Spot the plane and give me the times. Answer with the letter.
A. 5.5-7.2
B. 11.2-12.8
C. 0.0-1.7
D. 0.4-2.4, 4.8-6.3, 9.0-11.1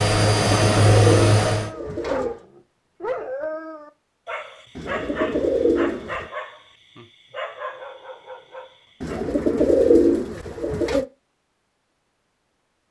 C.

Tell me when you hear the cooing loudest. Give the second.
10 s.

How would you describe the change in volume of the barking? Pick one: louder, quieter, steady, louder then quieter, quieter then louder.
quieter.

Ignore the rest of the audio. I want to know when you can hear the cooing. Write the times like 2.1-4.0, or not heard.
0.4-2.4, 4.8-6.3, 9.0-11.1.